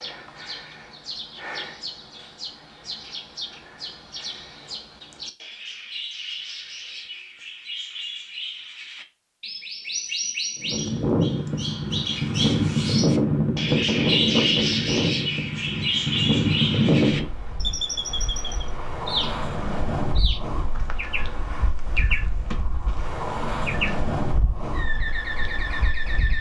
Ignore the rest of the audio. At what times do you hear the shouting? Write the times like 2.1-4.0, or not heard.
not heard.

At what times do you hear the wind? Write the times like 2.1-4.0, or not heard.
10.6-26.3.